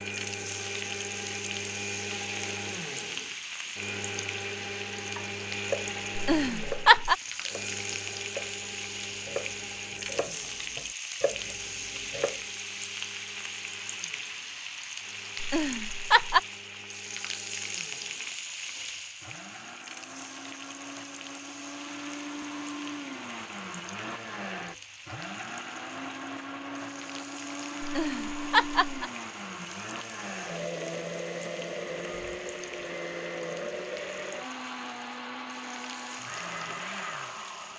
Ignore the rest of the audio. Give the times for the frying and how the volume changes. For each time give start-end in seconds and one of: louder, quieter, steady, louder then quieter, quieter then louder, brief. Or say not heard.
0.0-37.7 quieter.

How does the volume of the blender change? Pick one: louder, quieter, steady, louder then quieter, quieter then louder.
quieter then louder.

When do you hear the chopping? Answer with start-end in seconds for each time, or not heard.
5.2-12.4.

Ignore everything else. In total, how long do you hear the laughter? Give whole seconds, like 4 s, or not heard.
3 s.